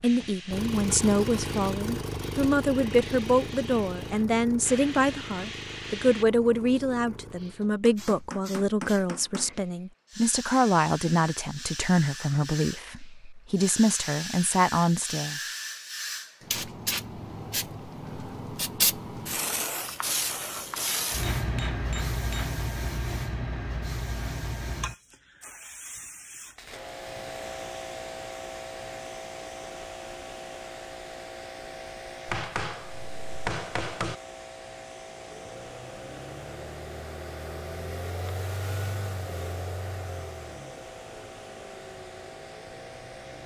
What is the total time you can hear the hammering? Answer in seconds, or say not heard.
5 s.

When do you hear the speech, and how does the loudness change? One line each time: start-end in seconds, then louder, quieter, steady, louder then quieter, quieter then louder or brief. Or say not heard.
0.0-15.4 steady.